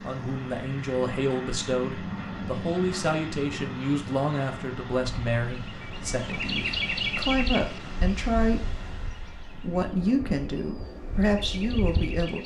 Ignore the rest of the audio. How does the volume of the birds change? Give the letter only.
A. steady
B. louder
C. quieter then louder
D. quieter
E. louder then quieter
C.